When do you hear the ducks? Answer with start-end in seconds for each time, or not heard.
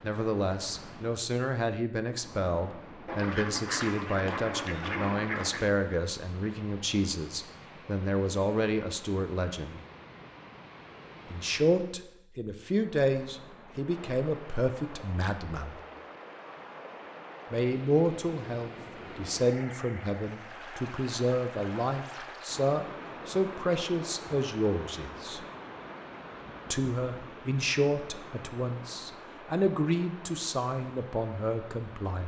3.0-5.7.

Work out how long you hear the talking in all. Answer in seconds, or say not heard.
28 s.